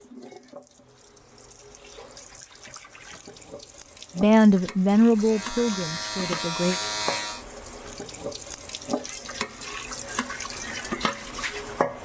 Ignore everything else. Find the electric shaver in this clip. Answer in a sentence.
The electric shaver can be heard from 5.1 to 7.5 s.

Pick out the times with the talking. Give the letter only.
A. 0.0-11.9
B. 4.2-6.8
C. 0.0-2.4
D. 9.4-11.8
B.